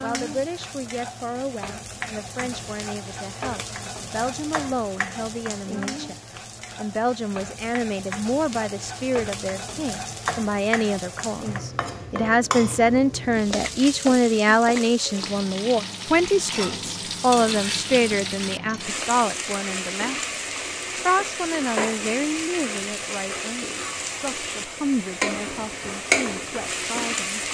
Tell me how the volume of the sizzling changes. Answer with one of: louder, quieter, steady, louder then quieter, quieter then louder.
louder.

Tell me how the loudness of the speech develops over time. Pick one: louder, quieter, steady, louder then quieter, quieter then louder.
louder then quieter.